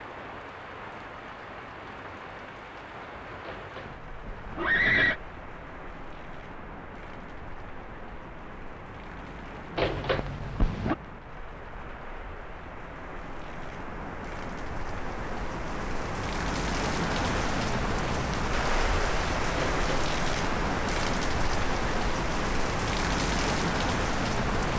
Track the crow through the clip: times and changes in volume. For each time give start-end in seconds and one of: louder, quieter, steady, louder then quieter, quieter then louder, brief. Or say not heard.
not heard.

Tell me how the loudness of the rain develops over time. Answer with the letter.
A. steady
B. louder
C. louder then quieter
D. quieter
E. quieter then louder
B.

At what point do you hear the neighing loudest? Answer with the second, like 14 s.
5 s.